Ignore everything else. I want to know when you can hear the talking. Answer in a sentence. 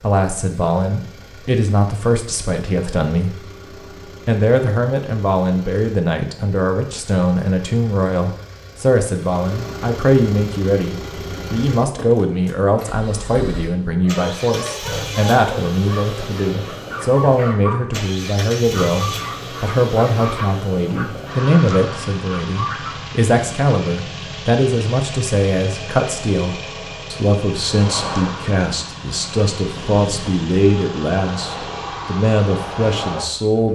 The talking can be heard from 0.0 to 3.5 s and from 4.2 to 33.7 s.